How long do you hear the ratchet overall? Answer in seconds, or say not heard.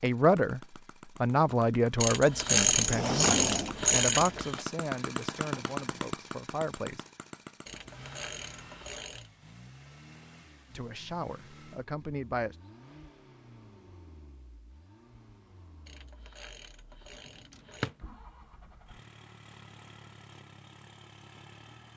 6 s.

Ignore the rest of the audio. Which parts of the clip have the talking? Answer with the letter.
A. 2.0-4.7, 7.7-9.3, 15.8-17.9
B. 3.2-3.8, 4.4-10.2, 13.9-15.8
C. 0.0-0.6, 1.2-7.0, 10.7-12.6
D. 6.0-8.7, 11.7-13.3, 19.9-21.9
C.